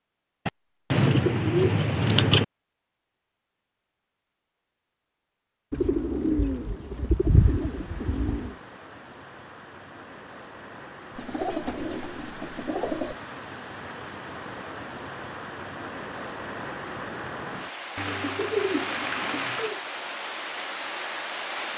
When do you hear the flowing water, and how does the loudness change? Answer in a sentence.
The flowing water can be heard from 7.2 to 21.7 s, getting louder.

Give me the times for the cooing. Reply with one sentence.
You can hear the cooing from 0.5 to 2.5 s, from 5.7 to 8.6 s, from 11.2 to 13.2 s and from 17.9 to 19.8 s.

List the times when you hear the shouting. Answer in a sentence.
You can't hear the shouting here.